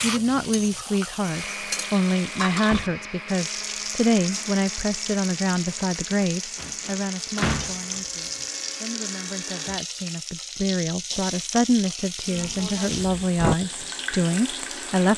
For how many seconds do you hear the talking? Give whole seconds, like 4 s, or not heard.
15 s.